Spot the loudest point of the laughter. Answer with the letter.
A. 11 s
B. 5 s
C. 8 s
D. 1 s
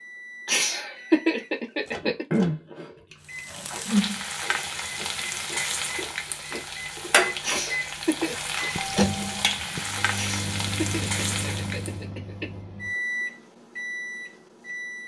D.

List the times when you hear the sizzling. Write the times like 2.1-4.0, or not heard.
3.3-11.9.